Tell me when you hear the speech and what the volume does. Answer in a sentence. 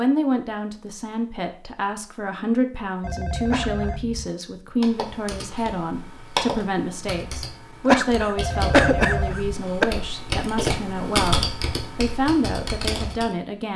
The speech can be heard from 0.0 to 13.7 s, at a steady volume.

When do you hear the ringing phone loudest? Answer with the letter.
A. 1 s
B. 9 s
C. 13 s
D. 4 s
B.